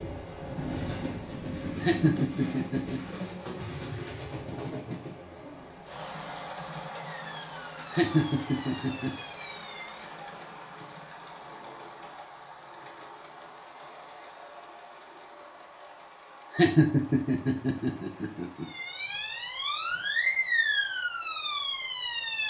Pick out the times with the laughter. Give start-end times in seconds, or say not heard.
1.8-3.0, 7.9-9.1, 16.5-18.6.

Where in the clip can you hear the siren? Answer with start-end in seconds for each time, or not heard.
7.0-10.1, 18.6-22.4.